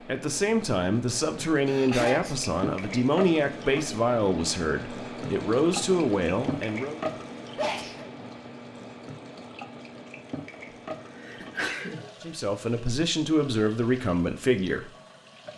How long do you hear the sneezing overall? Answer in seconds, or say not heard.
2 s.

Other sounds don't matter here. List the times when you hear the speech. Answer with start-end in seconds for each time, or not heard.
0.0-7.0, 12.2-14.9.